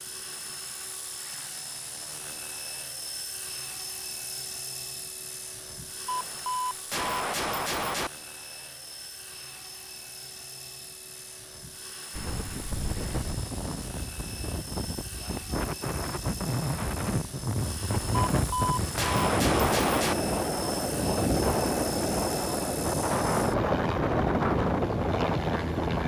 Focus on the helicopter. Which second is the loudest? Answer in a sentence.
The volume of the helicopter peaks at 24 seconds.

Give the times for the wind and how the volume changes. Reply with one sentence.
The wind can be heard from 12.1 to 26.0 s, getting louder.